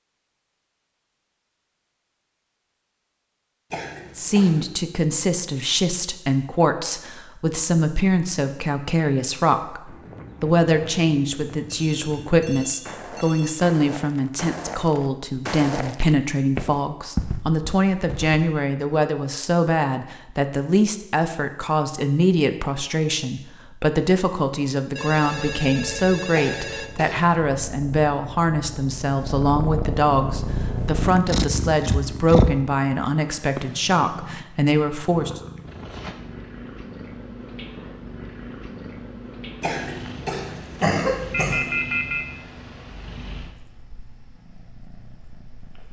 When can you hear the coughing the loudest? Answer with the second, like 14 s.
41 s.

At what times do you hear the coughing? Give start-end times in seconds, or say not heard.
3.7-4.8, 26.3-27.2, 39.6-41.7.